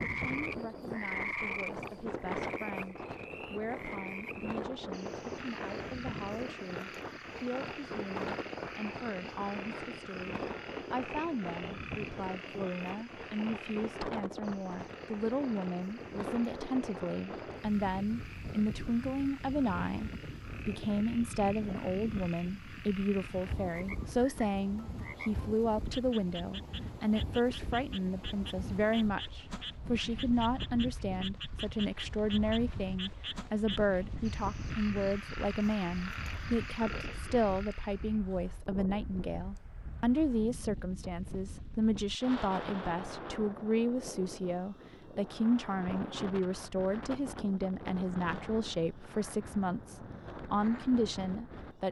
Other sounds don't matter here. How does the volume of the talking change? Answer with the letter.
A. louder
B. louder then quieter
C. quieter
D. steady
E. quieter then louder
A.